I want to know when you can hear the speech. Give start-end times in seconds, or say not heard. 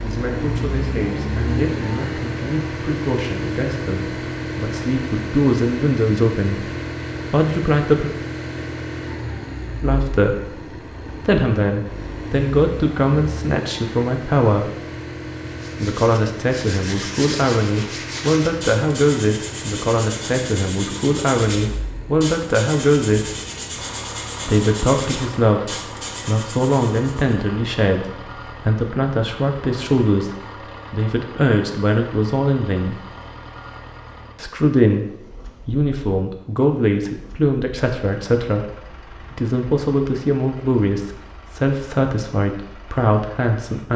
0.0-6.7, 7.3-8.1, 9.8-14.7, 15.8-23.3, 24.4-33.0, 34.4-43.9.